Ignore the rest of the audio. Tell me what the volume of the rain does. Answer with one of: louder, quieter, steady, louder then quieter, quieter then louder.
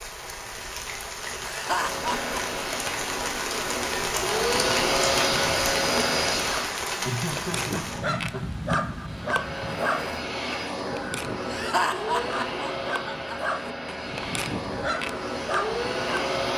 louder then quieter.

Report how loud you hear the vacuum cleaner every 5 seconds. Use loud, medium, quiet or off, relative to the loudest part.
loud, loud, medium, loud.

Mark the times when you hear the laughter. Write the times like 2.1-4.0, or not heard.
1.4-2.6, 7.0-8.9, 11.5-13.4.